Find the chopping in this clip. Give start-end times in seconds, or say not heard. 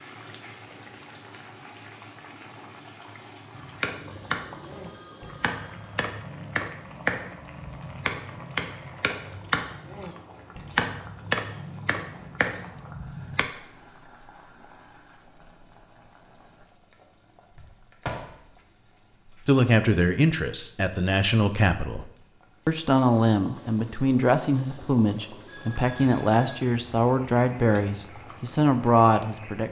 3.5-13.4.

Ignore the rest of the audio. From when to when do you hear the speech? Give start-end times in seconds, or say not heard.
19.4-22.1, 22.6-29.6.